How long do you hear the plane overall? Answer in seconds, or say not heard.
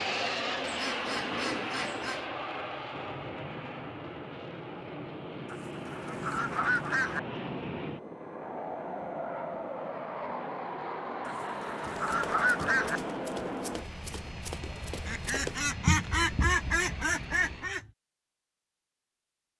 18 s.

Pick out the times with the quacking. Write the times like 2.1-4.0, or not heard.
0.6-2.2, 5.5-7.2, 11.2-13.0, 15.1-17.9.